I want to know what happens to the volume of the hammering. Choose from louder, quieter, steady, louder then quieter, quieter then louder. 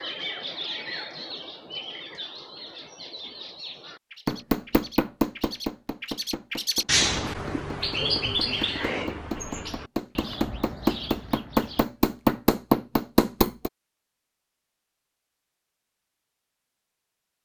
quieter then louder.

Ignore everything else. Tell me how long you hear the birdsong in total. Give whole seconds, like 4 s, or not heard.
12 s.